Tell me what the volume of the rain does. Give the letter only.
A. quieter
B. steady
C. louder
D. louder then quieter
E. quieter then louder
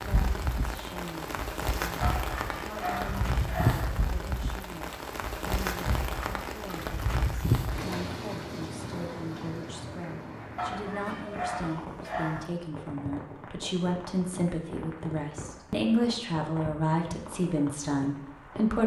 A.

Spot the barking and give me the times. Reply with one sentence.
The barking can be heard from 2.0 to 3.9 s and from 10.6 to 12.5 s.